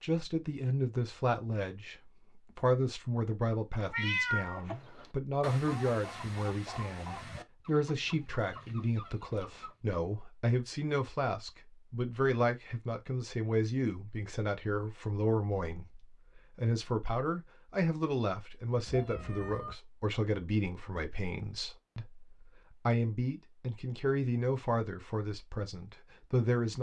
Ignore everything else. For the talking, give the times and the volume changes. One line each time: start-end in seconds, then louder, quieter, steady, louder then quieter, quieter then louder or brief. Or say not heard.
0.0-26.7 steady.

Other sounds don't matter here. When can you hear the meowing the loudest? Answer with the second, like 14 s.
4 s.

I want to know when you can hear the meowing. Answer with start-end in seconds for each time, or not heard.
3.9-4.6, 18.9-19.8.